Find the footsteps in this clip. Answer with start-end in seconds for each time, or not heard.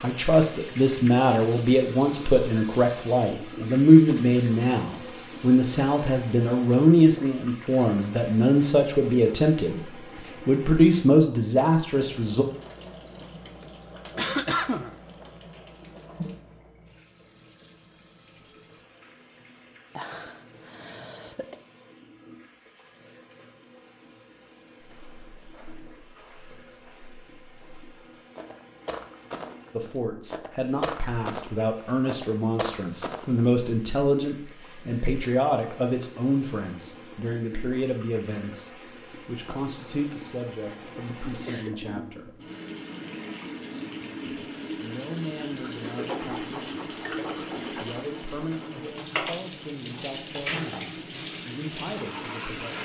24.8-33.5.